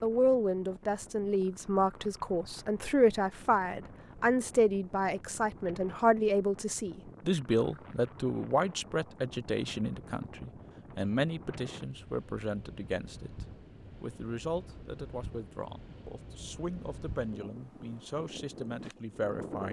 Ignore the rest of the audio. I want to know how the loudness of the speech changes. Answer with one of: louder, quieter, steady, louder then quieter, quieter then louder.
quieter.